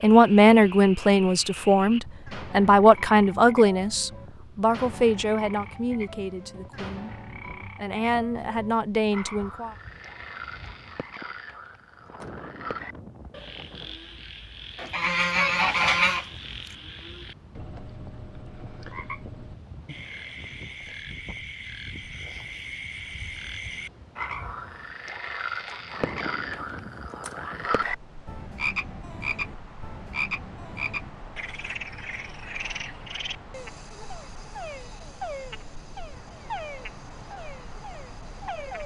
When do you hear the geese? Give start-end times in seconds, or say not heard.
14.8-16.8.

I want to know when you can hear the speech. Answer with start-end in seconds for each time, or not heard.
0.0-9.8.